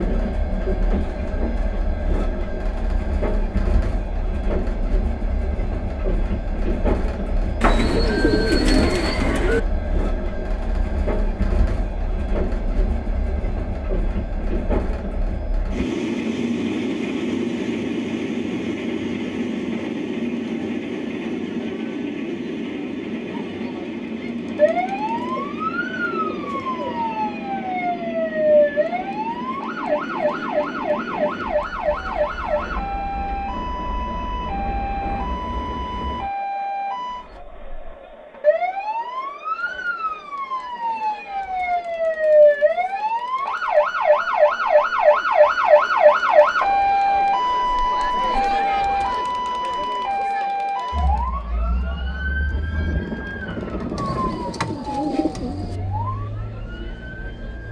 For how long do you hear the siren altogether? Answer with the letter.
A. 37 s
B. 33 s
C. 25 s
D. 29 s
B.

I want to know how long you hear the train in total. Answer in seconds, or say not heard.
36 s.